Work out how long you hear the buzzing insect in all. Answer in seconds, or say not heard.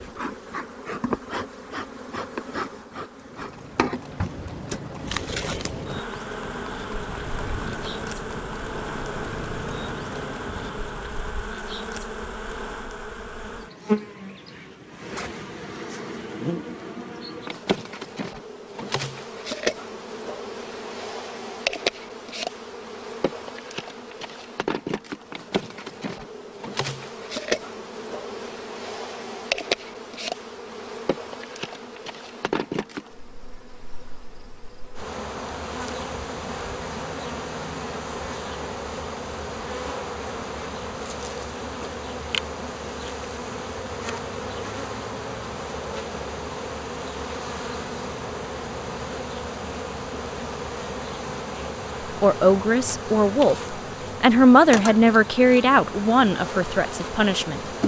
58 s.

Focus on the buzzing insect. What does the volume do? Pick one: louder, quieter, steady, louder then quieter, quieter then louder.
steady.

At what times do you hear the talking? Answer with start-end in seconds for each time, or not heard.
52.2-57.6.